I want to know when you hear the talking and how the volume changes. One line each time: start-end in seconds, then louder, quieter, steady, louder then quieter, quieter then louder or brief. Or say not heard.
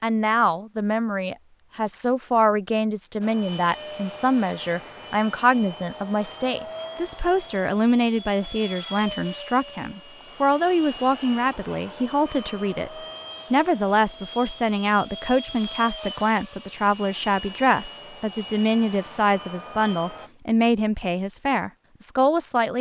0.0-22.7 steady.